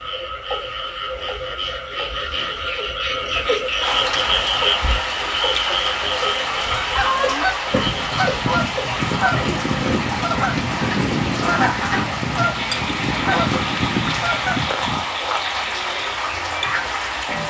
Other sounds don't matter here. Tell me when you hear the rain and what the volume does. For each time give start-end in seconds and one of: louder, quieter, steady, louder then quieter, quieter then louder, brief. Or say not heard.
3.8-17.4 steady.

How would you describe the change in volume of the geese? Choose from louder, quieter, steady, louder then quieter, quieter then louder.
steady.